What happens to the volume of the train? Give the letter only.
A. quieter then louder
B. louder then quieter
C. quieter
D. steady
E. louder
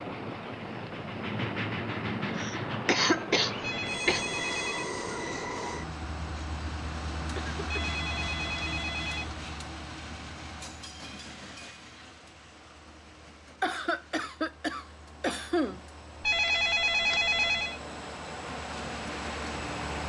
A.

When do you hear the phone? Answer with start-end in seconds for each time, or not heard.
3.6-4.9, 7.7-9.3, 16.2-17.8.